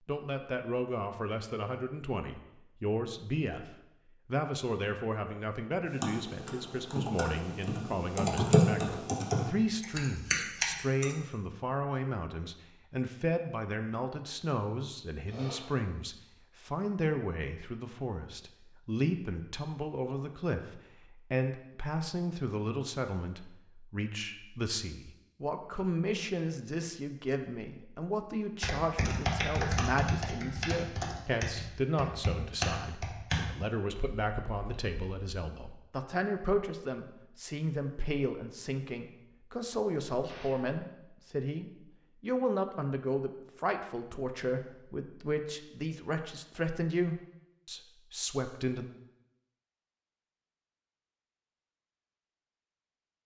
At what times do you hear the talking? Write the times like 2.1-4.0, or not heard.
0.1-48.9.